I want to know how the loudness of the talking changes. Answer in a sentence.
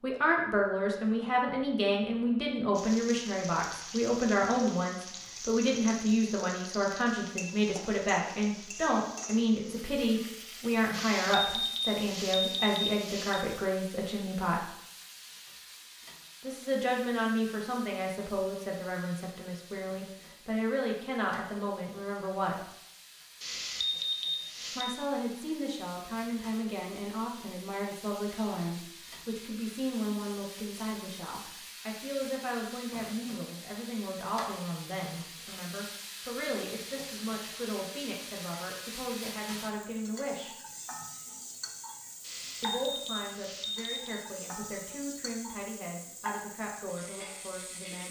The loudness of the talking goes down.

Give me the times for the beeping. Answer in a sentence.
The beeping can be heard from 10.9 to 13.4 s, from 23.4 to 24.9 s and from 42.2 to 44.2 s.